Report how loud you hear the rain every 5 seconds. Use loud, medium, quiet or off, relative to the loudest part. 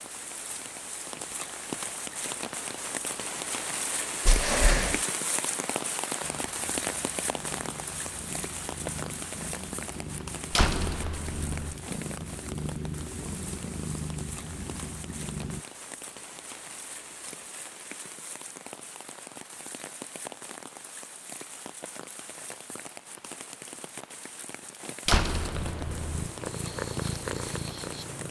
loud, loud, medium, medium, medium, medium.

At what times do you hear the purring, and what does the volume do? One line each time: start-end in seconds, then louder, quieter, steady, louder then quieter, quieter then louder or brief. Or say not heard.
6.2-15.7 louder
25.4-28.2 brief.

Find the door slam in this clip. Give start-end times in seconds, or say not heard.
4.2-5.0, 10.5-11.8, 25.1-26.3.